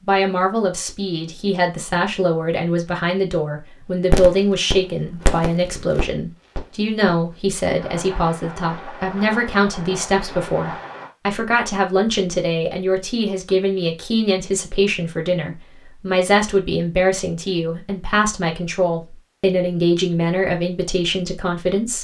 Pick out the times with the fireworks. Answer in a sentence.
You can hear the fireworks from 4.1 to 11.1 s.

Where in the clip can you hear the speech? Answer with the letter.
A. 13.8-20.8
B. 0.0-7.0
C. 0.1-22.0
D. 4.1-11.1
C.